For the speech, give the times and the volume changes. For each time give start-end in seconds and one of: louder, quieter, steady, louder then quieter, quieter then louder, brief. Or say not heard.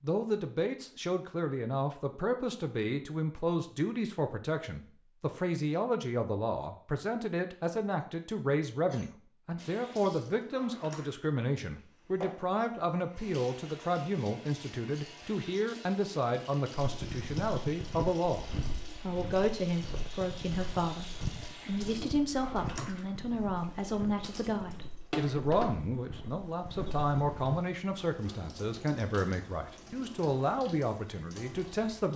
0.0-32.1 steady.